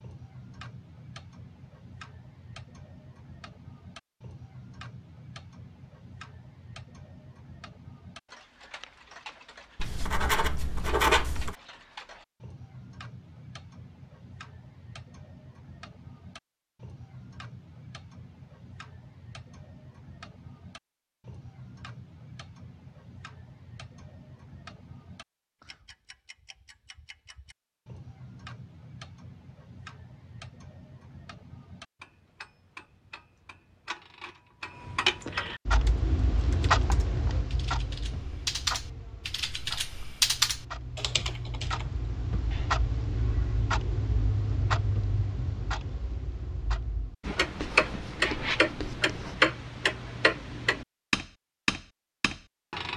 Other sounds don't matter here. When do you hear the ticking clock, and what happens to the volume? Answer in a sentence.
The ticking clock can be heard from 0.0 to 52.9 s, getting louder.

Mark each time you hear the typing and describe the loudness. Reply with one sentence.
The typing can be heard from 35.7 to 42.8 s, getting louder then quieter.